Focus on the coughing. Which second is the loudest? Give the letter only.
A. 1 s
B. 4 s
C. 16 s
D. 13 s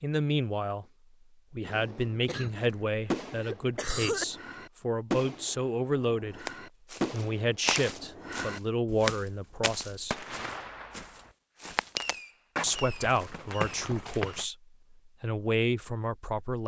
B.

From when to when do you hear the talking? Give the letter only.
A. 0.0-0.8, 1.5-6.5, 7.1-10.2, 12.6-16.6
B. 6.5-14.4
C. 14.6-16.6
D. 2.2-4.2
A.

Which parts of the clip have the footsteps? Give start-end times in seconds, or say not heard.
6.5-14.4.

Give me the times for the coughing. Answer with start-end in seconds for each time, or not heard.
2.2-4.2.